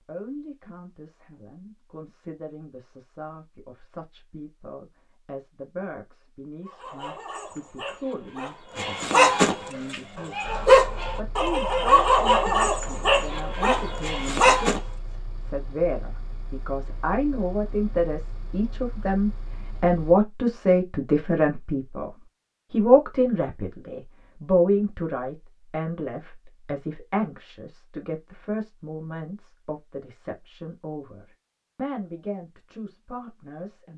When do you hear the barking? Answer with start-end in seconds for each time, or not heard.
6.7-14.8.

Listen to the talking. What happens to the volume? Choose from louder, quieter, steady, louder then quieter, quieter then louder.
louder then quieter.